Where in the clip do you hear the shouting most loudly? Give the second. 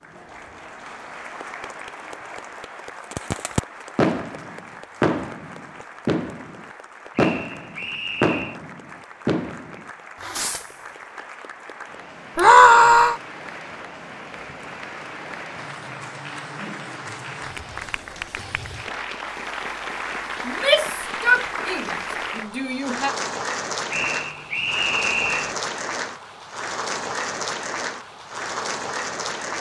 13 s.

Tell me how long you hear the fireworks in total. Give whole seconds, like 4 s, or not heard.
8 s.